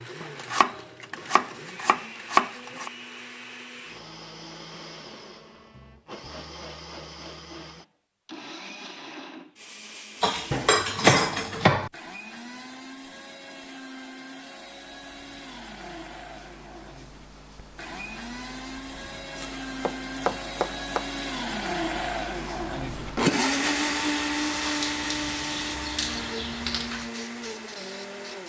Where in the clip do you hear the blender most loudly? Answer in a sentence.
The volume of the blender peaks at 24 seconds.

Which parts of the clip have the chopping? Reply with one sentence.
The chopping can be heard from 0.2 to 2.9 s, from 10.5 to 11.9 s and from 19.4 to 21.1 s.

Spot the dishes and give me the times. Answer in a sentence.
The dishes can be heard from 10.2 to 11.7 s.